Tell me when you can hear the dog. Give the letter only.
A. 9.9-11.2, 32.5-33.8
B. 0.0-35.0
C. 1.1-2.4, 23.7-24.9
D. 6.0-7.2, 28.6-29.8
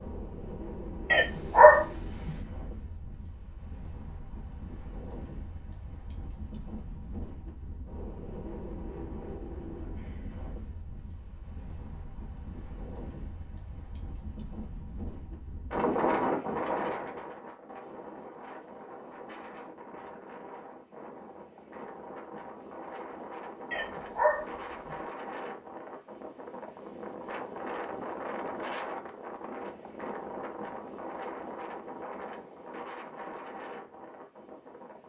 C.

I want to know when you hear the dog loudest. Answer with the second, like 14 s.
2 s.